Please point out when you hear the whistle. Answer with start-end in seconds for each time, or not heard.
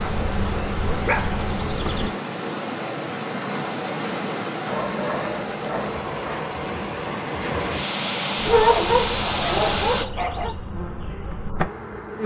not heard.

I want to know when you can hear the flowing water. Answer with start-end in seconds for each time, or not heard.
0.0-10.1.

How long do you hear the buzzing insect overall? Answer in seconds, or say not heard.
6 s.